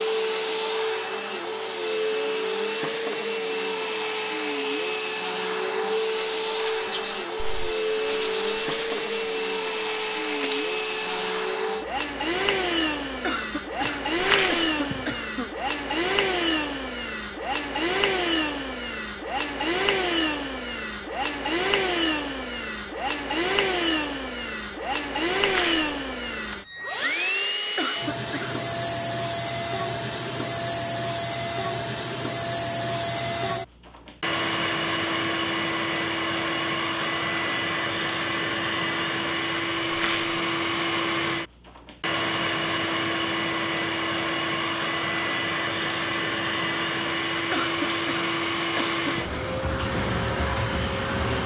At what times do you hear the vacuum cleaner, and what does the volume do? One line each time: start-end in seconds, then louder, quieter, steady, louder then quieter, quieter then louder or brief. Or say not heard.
0.0-51.4 steady.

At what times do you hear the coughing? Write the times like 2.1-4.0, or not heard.
13.2-15.5, 27.8-28.6, 47.5-49.4.